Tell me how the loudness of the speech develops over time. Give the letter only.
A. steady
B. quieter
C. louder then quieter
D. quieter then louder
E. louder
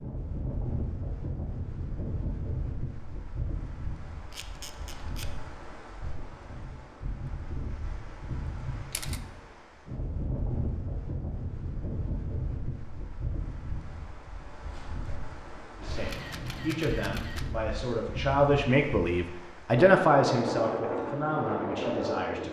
C.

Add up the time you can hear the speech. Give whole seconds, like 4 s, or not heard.
7 s.